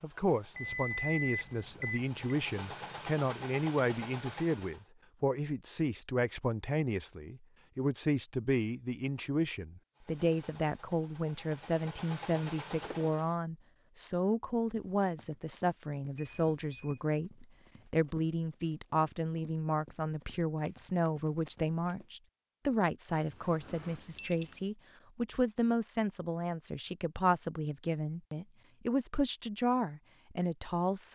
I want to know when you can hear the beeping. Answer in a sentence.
The beeping can be heard from 0.6 to 2.4 s, from 16.1 to 17.0 s and from 23.3 to 24.6 s.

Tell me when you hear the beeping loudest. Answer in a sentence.
The volume of the beeping peaks at 1 second.